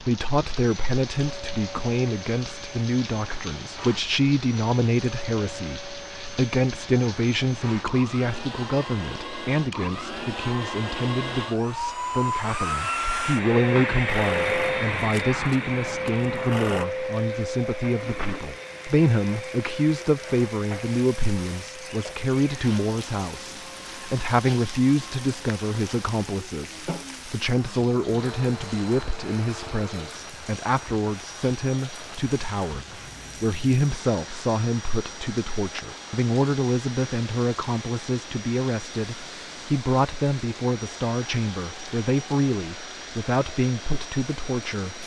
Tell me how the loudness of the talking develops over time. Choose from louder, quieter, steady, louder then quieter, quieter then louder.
steady.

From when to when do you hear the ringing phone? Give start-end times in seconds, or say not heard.
14.1-16.9.